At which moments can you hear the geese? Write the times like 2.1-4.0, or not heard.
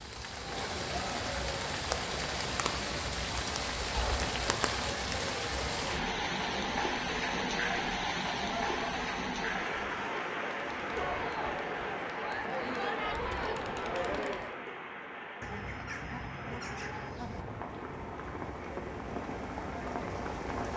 15.4-17.4.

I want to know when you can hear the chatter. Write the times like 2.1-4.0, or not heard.
0.2-14.6.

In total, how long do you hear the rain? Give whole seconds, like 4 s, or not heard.
21 s.